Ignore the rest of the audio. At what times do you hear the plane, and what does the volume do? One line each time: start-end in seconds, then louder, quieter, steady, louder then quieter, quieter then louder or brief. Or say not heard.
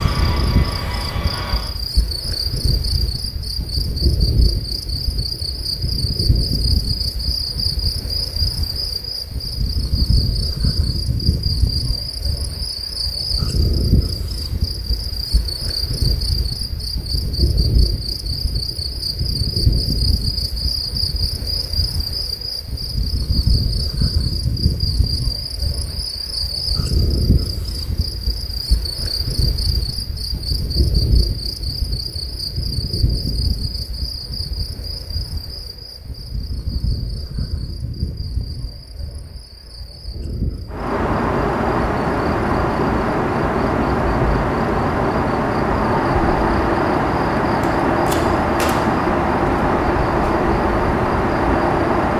0.0-1.8 brief
40.7-52.1 steady.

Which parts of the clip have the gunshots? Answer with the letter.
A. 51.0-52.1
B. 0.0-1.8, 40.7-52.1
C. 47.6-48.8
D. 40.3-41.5
C.